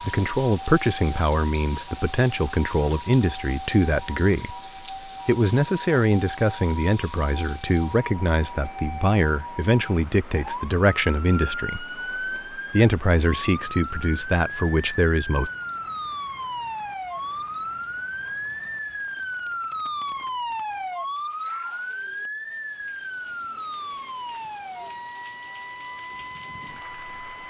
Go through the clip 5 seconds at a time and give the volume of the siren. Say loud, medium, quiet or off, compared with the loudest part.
medium, medium, loud, loud, loud, medium.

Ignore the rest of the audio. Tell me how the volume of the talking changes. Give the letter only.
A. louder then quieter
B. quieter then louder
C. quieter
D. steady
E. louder
D.